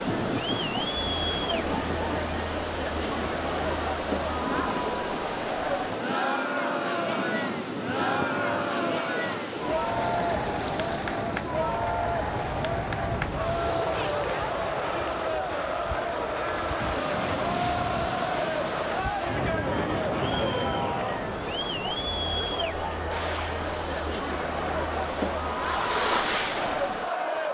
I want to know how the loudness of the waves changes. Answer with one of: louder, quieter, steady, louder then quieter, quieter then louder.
steady.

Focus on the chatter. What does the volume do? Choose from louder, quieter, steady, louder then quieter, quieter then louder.
steady.